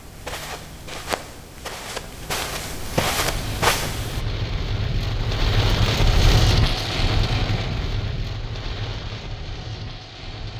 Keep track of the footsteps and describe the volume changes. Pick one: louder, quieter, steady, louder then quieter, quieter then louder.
louder.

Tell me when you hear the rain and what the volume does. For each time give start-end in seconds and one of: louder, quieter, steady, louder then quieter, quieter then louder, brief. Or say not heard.
3.2-10.5 louder then quieter.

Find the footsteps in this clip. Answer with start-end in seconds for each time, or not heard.
0.0-4.2.